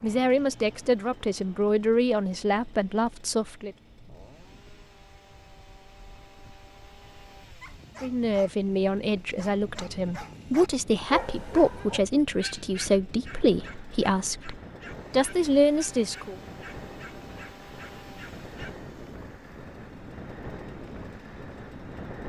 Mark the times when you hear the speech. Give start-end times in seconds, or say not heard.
0.0-3.8, 8.0-16.4.